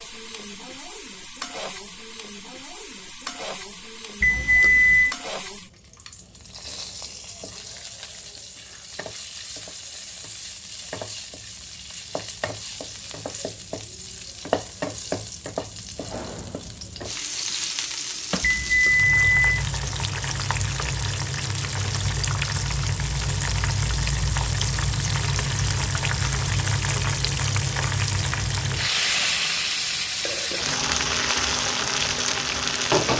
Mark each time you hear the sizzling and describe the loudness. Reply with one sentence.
The sizzling can be heard from 0.0 to 33.1 s, getting louder.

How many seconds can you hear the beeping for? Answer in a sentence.
The beeping can be heard for 2 seconds in total.